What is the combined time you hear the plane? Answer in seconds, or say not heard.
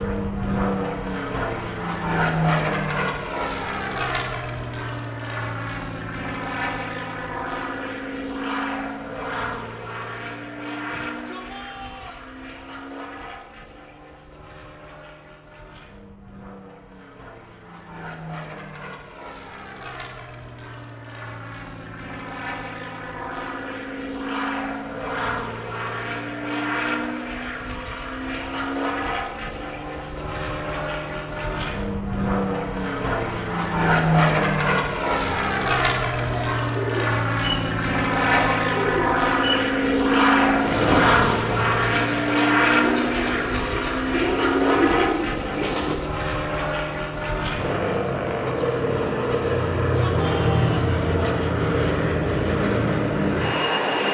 54 s.